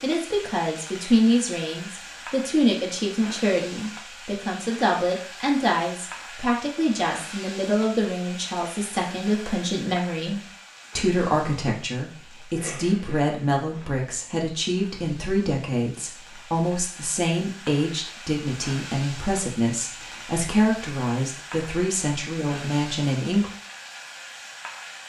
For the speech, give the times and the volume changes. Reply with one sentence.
The speech can be heard from 0.0 to 23.5 s, at a steady volume.